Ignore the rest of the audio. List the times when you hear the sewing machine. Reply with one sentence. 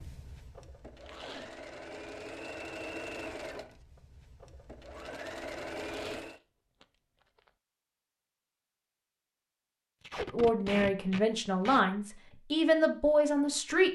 The sewing machine can be heard from 0.0 to 6.4 s.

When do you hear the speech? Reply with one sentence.
The speech can be heard from 10.3 to 13.9 s.